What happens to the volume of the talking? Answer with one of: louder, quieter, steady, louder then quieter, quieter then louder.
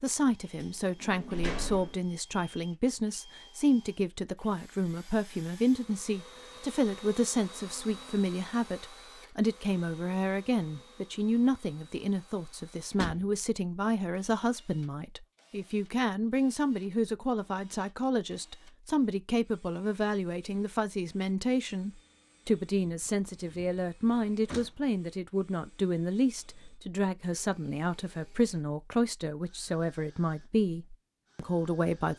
steady.